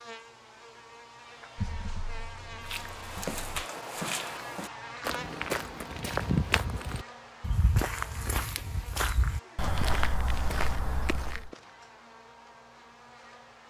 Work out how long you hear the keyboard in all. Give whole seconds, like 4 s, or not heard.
2 s.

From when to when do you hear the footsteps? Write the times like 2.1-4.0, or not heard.
2.6-11.5.